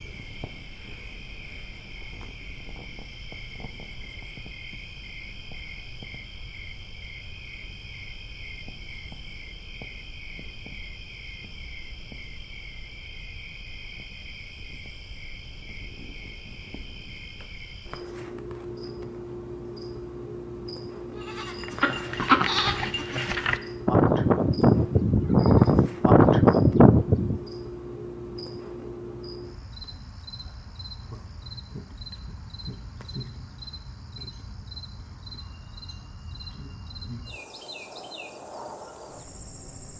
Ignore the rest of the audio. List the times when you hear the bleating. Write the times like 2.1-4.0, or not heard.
21.1-27.4.